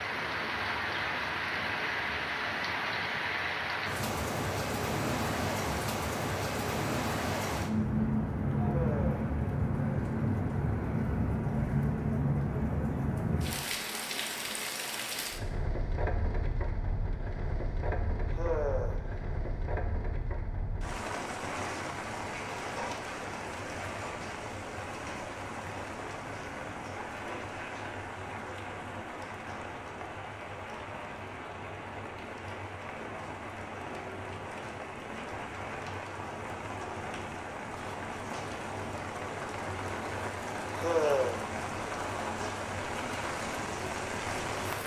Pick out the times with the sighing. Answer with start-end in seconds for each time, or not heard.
8.6-9.2, 18.2-19.2, 40.7-41.4.